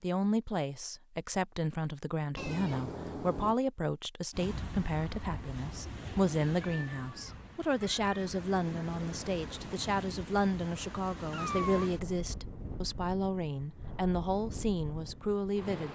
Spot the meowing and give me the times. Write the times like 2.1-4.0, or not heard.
2.4-3.5, 6.6-8.1, 11.3-11.9.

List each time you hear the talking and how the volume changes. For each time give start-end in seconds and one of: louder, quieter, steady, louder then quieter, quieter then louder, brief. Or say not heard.
0.0-15.9 steady.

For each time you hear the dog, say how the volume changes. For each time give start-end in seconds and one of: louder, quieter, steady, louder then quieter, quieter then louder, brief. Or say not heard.
not heard.